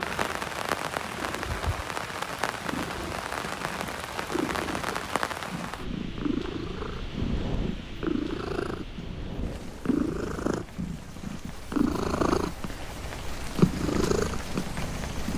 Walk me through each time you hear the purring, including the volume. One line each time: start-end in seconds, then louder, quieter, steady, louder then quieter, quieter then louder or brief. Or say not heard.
0.0-15.3 louder.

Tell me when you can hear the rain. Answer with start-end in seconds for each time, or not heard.
0.0-15.3.